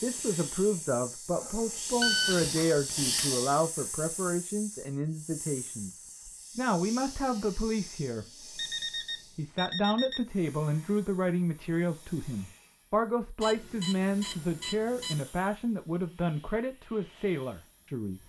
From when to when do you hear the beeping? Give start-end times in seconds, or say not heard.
1.4-3.2, 8.6-10.2, 13.4-15.2.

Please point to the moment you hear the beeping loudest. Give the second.
2 s.